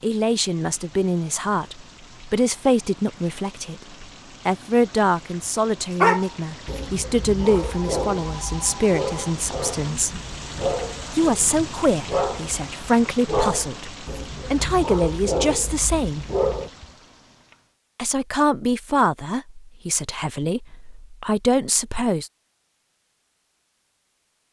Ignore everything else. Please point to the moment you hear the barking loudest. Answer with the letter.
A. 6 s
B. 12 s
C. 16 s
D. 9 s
A.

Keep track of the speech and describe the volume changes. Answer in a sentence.
The volume of the speech stays about the same.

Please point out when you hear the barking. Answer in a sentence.
You can hear the barking from 6.0 to 16.7 s.